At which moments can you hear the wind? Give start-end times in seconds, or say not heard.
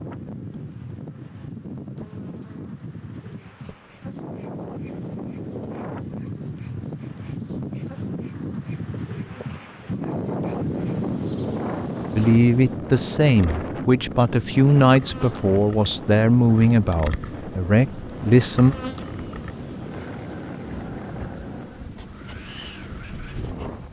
0.0-23.8.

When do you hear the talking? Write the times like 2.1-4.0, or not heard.
12.2-18.8.